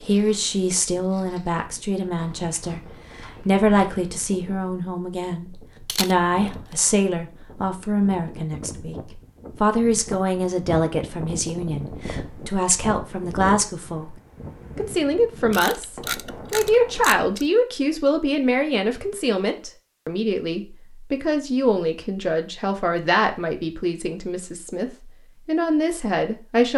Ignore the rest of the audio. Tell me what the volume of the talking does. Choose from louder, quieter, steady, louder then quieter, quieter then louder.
steady.